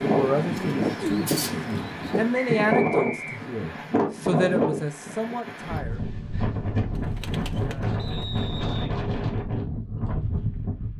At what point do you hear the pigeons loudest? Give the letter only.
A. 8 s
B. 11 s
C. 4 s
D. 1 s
D.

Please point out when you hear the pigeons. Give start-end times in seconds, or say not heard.
0.5-2.2, 7.0-8.4.